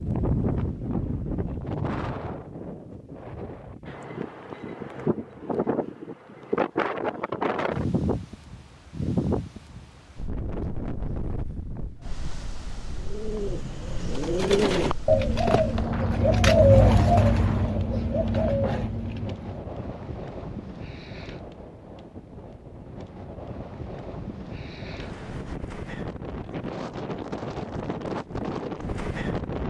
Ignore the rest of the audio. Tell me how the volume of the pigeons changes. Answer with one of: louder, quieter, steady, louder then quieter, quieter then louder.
louder then quieter.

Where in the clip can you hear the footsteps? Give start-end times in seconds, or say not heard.
not heard.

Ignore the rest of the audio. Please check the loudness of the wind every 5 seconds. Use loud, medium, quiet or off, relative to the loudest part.
loud, loud, medium, medium, medium, loud.